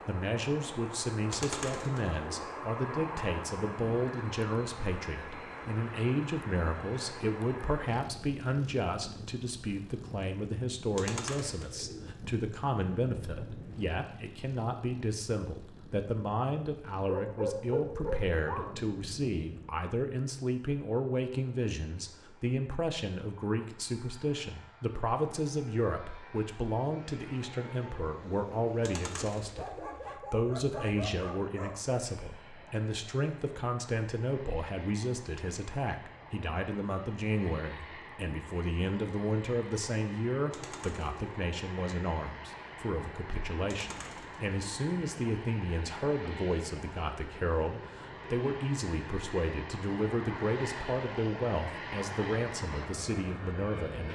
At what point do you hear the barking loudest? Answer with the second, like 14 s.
18 s.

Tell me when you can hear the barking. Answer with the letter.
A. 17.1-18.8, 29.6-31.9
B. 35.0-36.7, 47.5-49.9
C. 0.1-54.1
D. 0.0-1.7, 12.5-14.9
A.